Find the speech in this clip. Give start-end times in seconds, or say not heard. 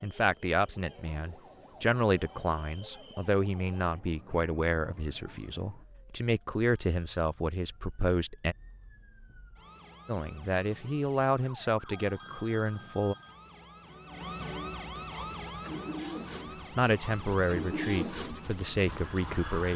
0.0-8.6, 10.1-13.2, 16.8-19.7.